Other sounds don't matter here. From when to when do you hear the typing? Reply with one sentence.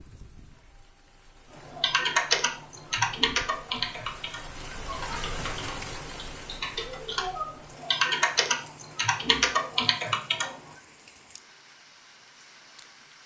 You can hear the typing from 1.6 to 10.6 s.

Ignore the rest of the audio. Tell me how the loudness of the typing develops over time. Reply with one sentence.
The volume of the typing goes down, then up.